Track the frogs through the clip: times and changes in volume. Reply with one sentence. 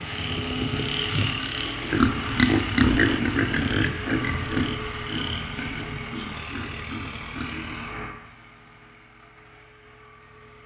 The frogs can be heard from 0.0 to 5.6 s, getting quieter.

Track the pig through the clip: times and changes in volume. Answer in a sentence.
The pig can be heard from 1.9 to 7.8 s, getting quieter.